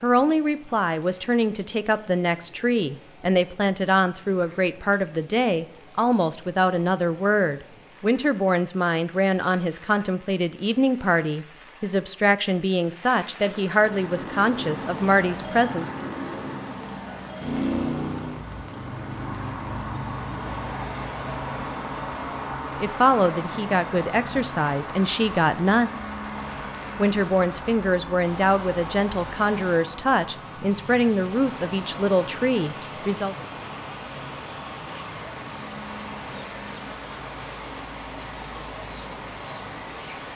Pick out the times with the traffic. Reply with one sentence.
You can hear the traffic from 13.7 to 40.3 s.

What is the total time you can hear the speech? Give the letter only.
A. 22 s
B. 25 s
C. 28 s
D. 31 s
B.